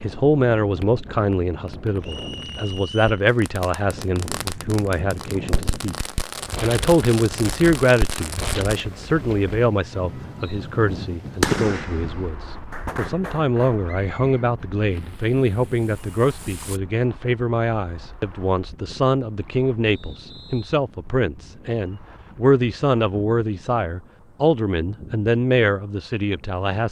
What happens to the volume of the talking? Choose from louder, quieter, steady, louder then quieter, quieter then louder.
steady.